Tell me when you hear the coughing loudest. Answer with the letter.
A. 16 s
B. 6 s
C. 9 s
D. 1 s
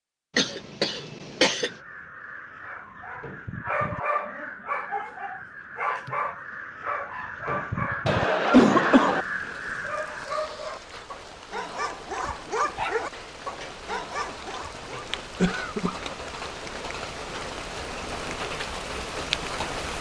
C.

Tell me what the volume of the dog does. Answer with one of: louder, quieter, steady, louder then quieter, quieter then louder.
steady.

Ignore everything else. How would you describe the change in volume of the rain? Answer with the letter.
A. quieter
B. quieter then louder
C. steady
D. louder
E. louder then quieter
D.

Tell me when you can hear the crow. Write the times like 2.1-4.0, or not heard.
1.5-10.4.